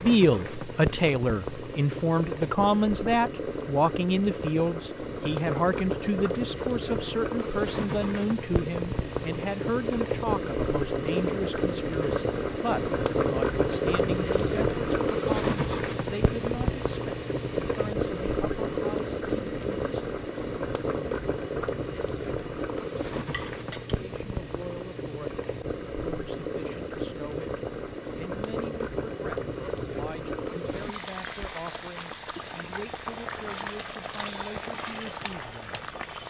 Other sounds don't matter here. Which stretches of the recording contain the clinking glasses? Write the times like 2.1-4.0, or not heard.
23.3-24.0.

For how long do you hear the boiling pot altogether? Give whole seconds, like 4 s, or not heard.
36 s.